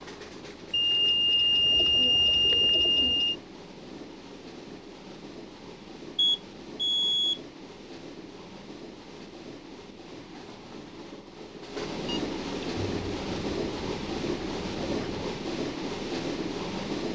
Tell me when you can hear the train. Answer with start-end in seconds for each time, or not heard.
0.0-17.1.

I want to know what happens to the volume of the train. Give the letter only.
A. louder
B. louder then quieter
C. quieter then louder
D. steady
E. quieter
A.